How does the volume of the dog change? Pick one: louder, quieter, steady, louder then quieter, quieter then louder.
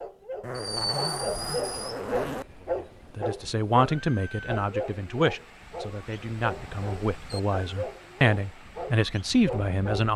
quieter.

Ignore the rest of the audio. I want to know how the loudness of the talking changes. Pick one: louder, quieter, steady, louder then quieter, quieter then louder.
quieter then louder.